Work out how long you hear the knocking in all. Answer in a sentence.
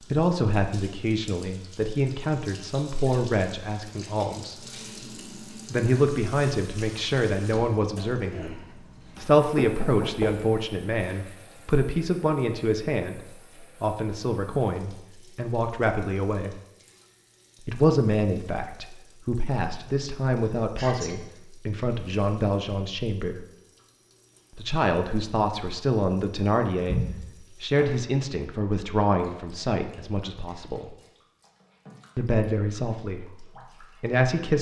The knocking can be heard for 2 seconds in total.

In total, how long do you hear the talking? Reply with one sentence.
The talking can be heard for 30 seconds in total.